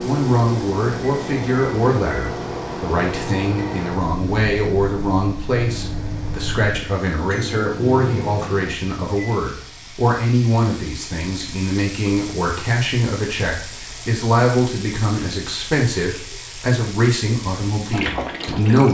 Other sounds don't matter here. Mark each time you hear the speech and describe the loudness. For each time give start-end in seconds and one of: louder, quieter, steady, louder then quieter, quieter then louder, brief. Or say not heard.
0.0-18.8 steady.